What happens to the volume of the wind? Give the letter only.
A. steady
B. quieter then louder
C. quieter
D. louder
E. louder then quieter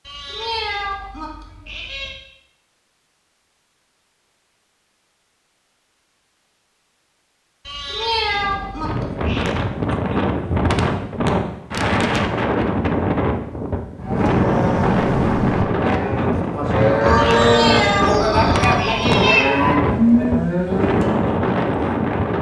A.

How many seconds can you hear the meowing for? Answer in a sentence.
You can hear the meowing for 6 seconds altogether.